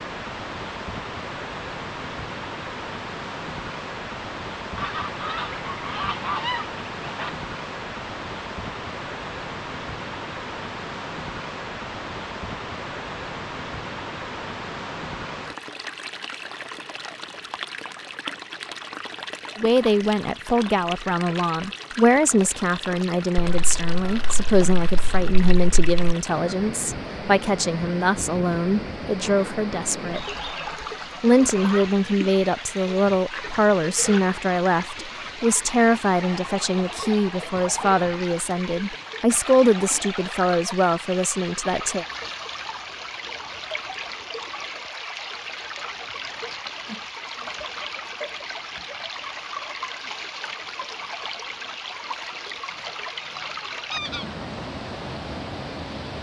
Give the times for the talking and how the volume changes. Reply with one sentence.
The talking can be heard from 19.6 to 30.2 s, at a steady volume; and from 31.2 to 42.0 s, at a steady volume.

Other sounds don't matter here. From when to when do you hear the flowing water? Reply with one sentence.
You can hear the flowing water from 0.0 to 56.1 s.